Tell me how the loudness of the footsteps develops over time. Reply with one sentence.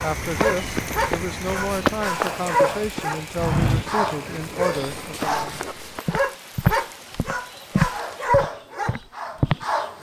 The volume of the footsteps goes up.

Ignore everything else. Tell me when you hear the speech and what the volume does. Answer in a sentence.
You can hear the speech from 0.0 to 5.5 s, at a steady volume.